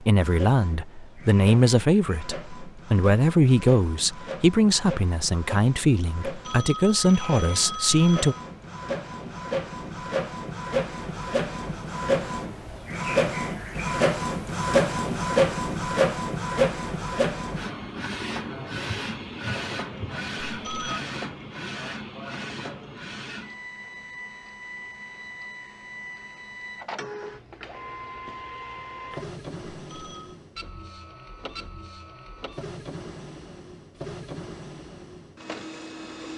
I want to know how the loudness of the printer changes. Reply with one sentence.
The loudness of the printer goes up, then down.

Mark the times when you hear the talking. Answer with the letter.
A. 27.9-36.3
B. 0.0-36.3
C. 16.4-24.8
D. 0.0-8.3
D.